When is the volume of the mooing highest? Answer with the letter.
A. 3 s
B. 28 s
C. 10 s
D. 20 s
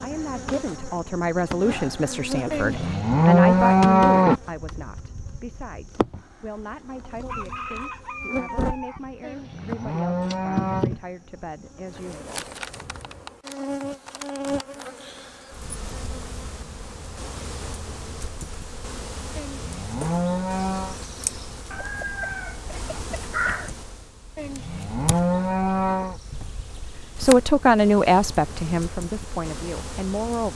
A.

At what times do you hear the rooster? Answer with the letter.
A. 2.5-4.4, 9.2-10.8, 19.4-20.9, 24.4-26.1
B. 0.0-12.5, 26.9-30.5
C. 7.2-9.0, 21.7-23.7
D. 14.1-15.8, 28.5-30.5
C.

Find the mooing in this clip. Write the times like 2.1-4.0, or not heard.
2.5-4.4, 9.2-10.8, 19.4-20.9, 24.4-26.1.